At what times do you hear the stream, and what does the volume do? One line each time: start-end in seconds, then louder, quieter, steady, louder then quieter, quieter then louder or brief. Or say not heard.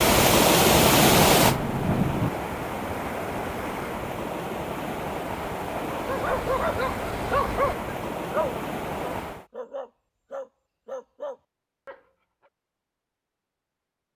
0.0-9.4 quieter.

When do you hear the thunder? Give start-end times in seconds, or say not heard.
0.8-2.3.